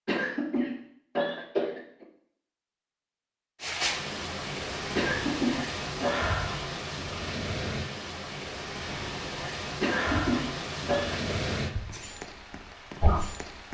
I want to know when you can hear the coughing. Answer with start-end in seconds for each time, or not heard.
0.1-2.0, 5.0-6.2, 9.8-11.3.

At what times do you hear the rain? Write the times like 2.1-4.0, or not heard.
3.6-13.7.